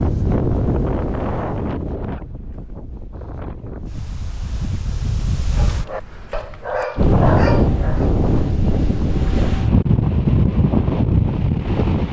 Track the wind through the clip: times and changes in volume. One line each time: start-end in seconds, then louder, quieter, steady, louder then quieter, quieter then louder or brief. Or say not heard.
0.0-12.0 quieter then louder.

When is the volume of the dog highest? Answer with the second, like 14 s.
7 s.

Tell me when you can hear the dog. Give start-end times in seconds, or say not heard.
5.5-8.1.